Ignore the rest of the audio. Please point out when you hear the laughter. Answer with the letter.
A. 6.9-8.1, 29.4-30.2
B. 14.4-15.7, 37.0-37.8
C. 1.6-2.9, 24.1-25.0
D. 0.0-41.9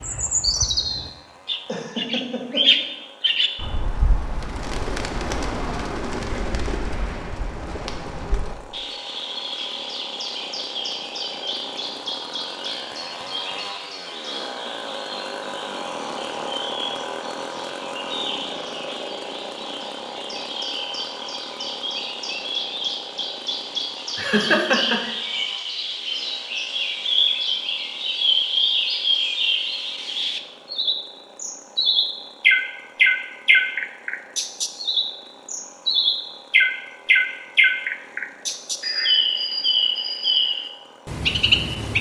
C.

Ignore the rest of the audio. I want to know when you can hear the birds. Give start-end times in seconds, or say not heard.
0.0-41.9.